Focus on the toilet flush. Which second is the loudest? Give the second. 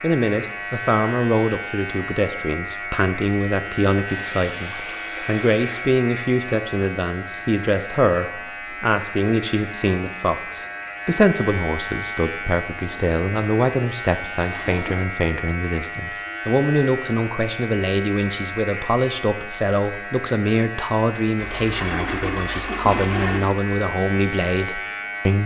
23 s.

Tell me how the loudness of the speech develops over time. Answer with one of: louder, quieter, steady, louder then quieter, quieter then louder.
steady.